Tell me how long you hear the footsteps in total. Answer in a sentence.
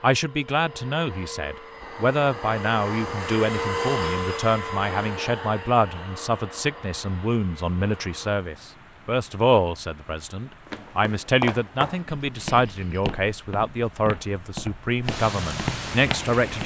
You can hear the footsteps for 6 seconds altogether.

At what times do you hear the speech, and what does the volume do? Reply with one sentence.
You can hear the speech from 0.0 to 16.6 s, at a steady volume.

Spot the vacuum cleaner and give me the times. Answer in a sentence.
You can hear the vacuum cleaner from 0.0 to 8.4 s.